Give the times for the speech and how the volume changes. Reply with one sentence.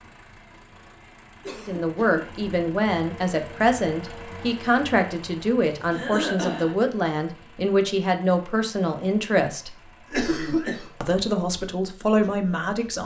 You can hear the speech from 1.6 to 9.8 s, at a steady volume; and briefly from 11.0 to 13.0 s.